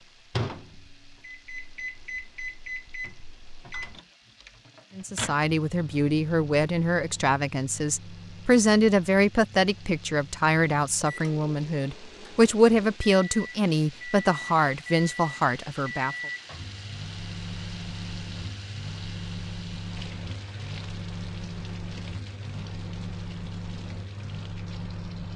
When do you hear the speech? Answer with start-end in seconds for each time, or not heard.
5.0-16.1.